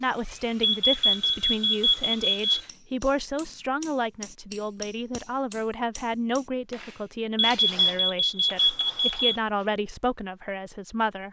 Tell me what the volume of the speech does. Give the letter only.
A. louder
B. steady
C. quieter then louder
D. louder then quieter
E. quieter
B.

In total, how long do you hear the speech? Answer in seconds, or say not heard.
11 s.